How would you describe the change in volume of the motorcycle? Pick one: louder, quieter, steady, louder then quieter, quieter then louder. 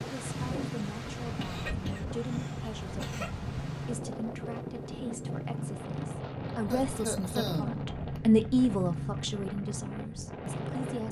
steady.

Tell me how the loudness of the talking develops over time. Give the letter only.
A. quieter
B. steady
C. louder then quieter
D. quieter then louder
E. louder
C.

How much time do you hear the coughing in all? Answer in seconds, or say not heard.
3 s.